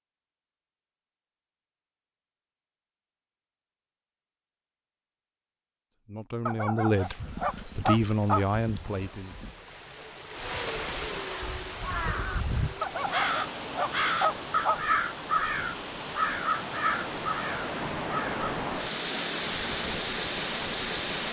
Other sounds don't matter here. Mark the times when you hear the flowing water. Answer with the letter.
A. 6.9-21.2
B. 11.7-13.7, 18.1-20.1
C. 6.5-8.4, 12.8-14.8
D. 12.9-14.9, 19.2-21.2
A.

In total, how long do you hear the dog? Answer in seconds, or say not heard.
4 s.